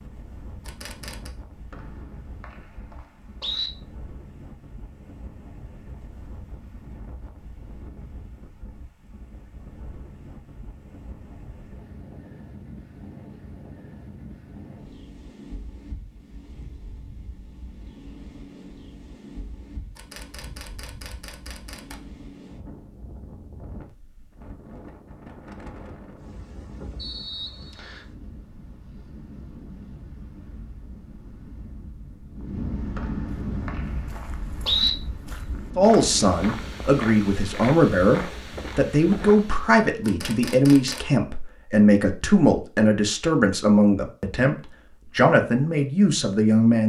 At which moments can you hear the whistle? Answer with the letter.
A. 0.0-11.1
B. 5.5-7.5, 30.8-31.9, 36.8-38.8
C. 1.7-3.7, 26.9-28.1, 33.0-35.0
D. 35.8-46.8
C.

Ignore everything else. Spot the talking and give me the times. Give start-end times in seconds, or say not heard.
35.8-46.8.